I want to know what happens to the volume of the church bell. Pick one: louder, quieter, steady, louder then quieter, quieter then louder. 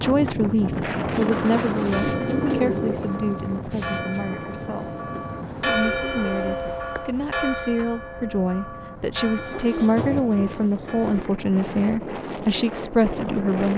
louder then quieter.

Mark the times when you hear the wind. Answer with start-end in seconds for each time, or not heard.
0.0-13.7.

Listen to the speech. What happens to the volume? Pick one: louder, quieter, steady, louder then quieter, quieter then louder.
quieter then louder.